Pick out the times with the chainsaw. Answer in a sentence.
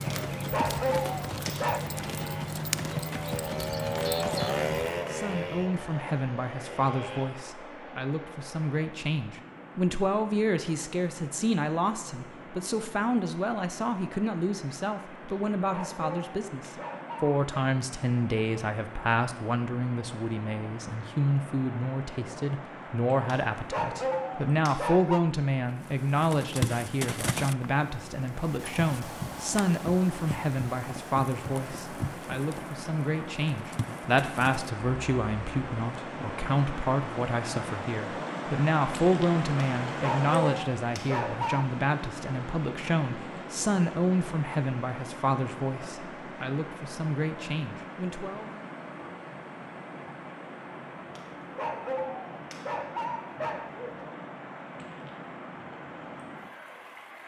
The chainsaw can be heard from 0.0 to 7.3 s.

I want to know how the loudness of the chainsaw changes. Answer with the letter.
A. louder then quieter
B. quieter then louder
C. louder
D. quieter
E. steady
A.